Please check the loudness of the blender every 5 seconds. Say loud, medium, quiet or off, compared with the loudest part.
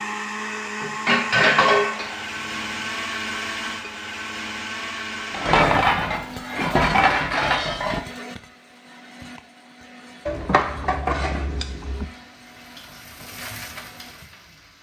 loud, medium, quiet.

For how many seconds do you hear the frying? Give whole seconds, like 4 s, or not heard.
3 s.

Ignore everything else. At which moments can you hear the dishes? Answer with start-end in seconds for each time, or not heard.
0.8-2.9, 5.3-8.1, 10.2-12.1.